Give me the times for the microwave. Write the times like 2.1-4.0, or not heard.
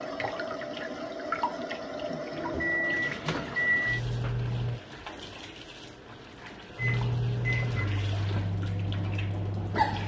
2.3-4.8, 6.8-10.0.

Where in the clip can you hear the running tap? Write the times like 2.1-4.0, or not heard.
0.0-10.0.